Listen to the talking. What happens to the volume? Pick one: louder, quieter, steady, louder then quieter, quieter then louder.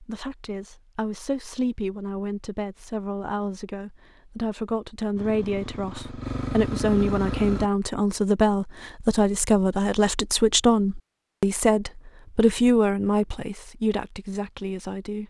louder.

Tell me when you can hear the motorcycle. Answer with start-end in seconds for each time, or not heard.
5.2-7.7.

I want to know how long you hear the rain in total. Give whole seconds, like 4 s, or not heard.
not heard.